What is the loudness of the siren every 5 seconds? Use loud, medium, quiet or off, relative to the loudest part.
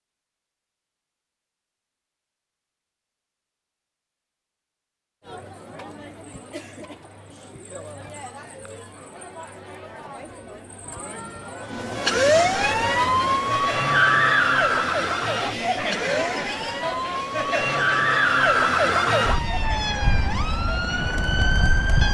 off, off, loud, loud, medium.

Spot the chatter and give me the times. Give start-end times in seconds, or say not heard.
5.2-22.0.